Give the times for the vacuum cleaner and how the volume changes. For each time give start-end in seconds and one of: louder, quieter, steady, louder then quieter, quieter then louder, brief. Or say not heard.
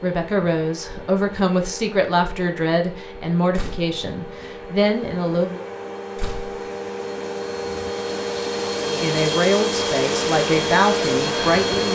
0.0-11.9 louder.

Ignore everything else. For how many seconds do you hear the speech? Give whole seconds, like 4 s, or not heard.
9 s.